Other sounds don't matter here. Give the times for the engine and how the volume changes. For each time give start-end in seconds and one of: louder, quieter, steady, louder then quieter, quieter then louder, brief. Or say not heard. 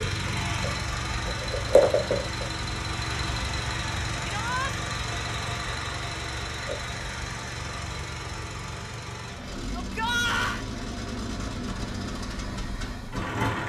0.0-13.6 quieter.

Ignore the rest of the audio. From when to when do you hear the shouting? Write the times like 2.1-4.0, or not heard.
4.2-4.7, 9.7-10.7.